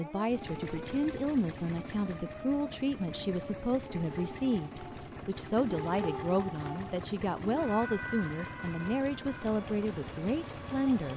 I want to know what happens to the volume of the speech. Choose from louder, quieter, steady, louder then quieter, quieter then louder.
steady.